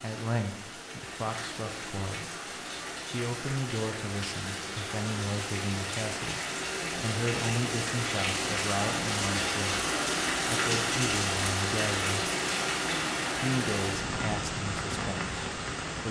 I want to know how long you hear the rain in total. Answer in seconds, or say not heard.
16 s.